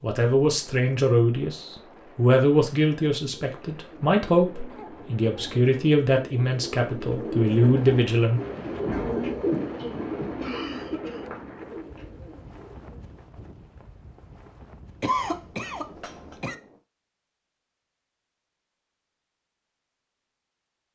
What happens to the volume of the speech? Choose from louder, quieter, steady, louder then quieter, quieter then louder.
steady.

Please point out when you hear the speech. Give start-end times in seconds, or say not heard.
0.0-8.4.